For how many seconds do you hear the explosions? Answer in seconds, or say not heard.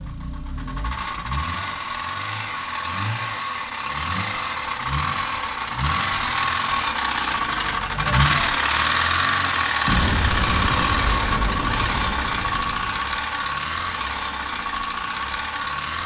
3 s.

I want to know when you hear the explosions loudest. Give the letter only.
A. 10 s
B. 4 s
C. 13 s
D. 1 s
A.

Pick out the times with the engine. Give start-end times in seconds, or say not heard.
0.0-16.0.